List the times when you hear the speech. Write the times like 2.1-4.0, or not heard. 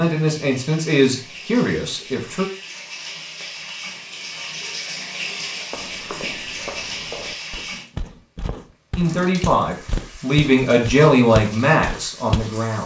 0.0-2.5, 8.9-12.8.